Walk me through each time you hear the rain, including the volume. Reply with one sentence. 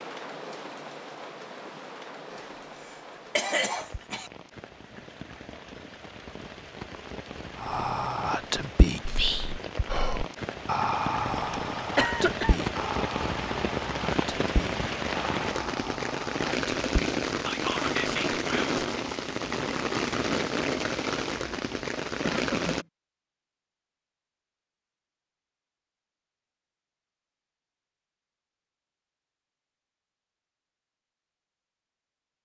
You can hear the rain from 0.0 to 22.9 s, getting louder.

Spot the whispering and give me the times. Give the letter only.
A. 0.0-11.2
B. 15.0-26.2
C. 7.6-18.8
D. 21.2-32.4
C.